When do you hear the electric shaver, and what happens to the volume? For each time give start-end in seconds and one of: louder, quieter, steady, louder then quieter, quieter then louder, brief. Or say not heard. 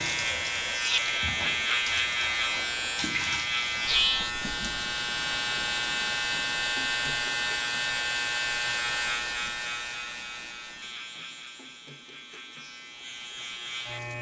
0.0-14.1 quieter.